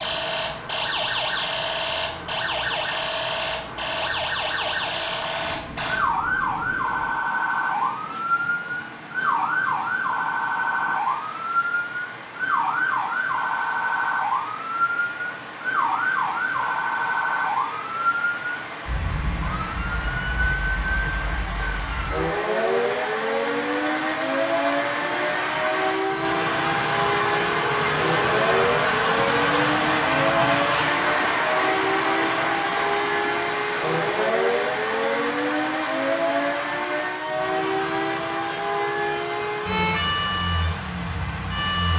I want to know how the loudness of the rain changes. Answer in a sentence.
The volume of the rain goes up, then down.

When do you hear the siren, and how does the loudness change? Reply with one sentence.
You can hear the siren from 0.0 to 41.9 s, at a steady volume.